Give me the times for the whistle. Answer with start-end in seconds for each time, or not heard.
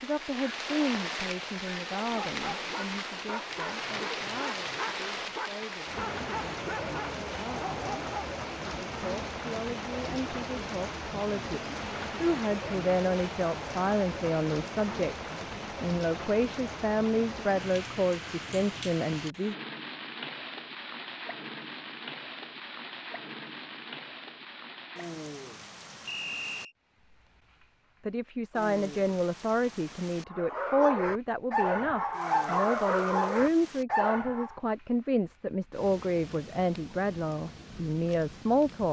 26.1-26.8.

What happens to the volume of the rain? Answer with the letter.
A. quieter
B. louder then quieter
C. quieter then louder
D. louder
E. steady
A.